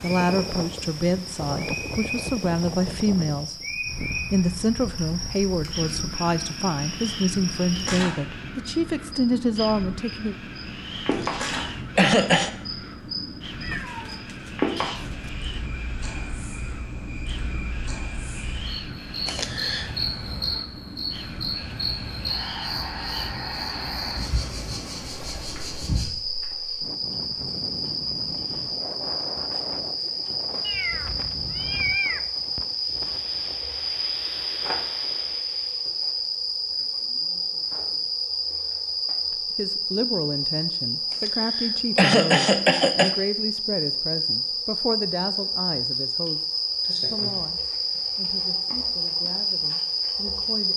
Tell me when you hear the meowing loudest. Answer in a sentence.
The volume of the meowing peaks at 32 seconds.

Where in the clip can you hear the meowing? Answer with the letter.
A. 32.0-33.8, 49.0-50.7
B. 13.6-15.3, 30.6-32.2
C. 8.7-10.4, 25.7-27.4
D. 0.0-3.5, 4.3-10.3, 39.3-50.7
B.